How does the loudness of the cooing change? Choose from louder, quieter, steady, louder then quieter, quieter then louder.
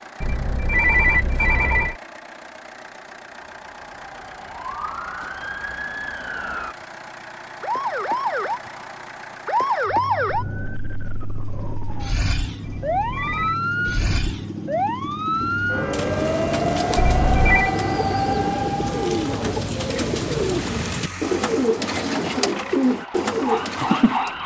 louder.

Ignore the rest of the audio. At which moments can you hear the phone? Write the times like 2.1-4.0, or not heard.
0.2-1.9, 12.6-13.6, 16.9-17.7.